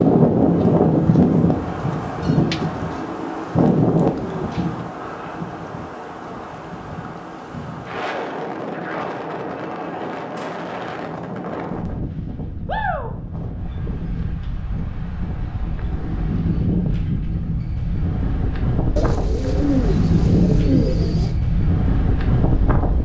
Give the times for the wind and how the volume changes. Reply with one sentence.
The wind can be heard from 0.0 to 23.0 s, getting quieter then louder.